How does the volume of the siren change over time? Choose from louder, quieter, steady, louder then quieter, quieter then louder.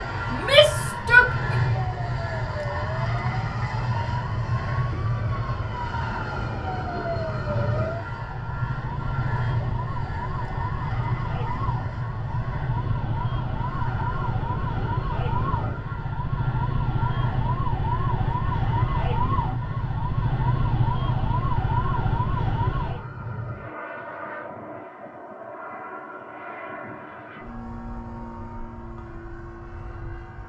louder.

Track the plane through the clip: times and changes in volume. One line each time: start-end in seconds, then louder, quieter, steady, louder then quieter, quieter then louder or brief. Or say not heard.
0.0-30.4 quieter.